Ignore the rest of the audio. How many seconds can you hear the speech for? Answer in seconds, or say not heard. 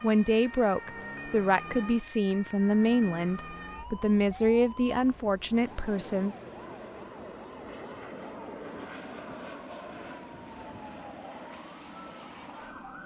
6 s.